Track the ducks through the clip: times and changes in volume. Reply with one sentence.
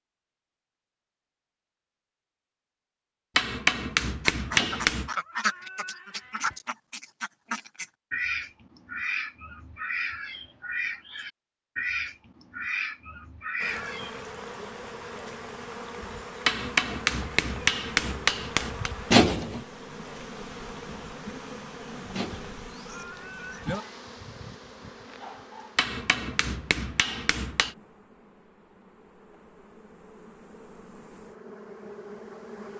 The ducks can be heard from 4.3 to 14.2 s, at a steady volume.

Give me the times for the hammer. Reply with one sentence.
The hammer can be heard from 3.4 to 5.1 s, from 16.4 to 18.9 s and from 25.8 to 27.8 s.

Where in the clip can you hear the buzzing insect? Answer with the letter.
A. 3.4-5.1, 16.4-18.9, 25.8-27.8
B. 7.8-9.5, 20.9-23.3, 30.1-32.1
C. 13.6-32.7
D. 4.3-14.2
C.